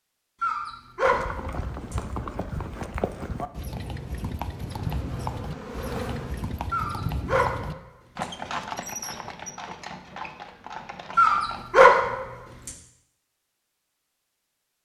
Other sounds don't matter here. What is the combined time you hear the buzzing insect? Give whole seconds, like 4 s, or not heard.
2 s.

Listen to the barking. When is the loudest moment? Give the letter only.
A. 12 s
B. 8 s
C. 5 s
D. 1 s
A.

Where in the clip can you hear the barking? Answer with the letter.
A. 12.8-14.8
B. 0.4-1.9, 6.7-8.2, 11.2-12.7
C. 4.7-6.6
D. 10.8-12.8
B.